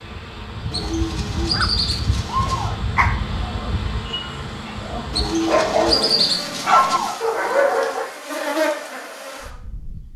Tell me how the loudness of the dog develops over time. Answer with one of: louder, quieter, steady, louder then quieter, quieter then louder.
quieter then louder.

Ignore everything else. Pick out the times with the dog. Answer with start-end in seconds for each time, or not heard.
1.5-8.1.